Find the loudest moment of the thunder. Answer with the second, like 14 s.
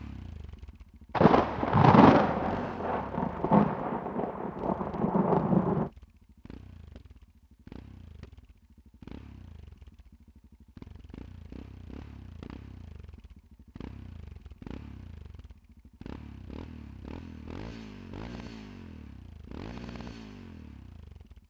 2 s.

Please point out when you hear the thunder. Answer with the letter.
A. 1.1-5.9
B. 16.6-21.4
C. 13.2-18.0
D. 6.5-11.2
A.